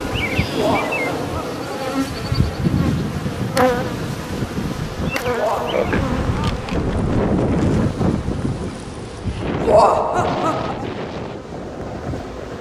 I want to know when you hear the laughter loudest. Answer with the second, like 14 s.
10 s.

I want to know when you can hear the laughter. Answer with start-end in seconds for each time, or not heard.
0.6-1.9, 5.3-6.0, 9.7-10.8.